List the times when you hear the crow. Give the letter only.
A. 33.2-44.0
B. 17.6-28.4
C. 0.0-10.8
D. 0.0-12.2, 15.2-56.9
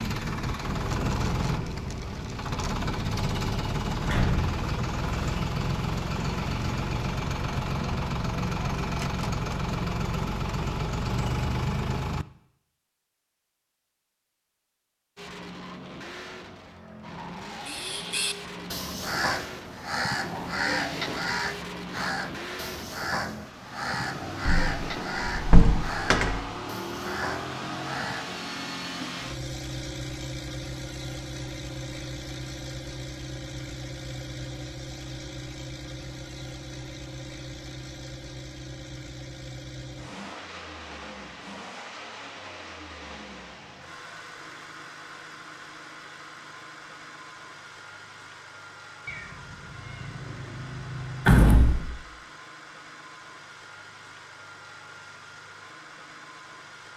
B.